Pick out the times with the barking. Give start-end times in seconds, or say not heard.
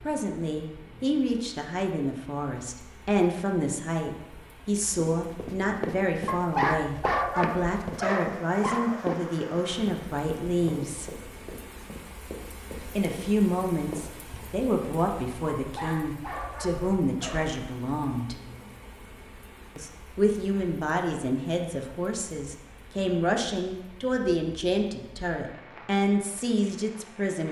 6.2-9.2, 15.6-17.6.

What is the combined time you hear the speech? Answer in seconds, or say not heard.
24 s.